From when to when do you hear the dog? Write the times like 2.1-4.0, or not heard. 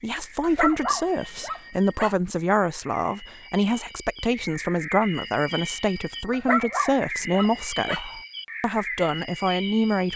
0.4-2.1, 6.3-8.2.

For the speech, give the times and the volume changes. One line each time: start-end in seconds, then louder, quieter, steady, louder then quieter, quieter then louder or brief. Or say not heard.
0.0-10.1 steady.